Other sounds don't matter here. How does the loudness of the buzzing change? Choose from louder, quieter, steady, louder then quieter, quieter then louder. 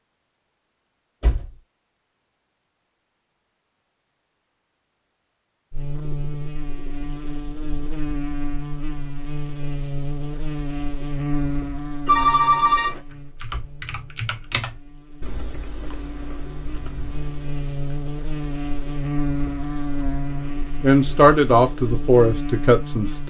quieter then louder.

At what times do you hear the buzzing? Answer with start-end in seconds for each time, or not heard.
5.7-23.2.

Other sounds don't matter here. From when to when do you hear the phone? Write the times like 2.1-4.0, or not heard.
12.1-13.0.